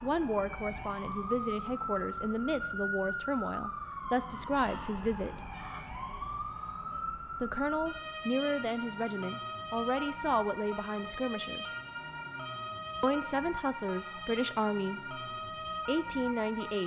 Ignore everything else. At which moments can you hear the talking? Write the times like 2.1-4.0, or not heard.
0.0-5.4, 7.4-11.8, 13.0-15.2, 15.8-16.8.